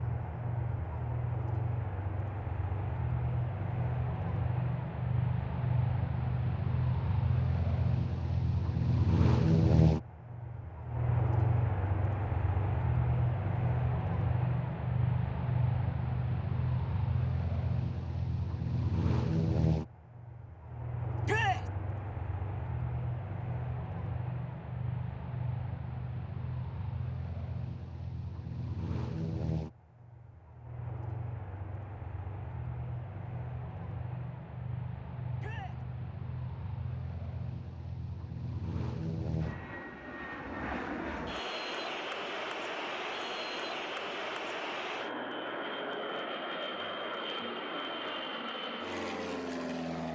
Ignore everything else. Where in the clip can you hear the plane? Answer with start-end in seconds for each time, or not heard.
0.0-50.1.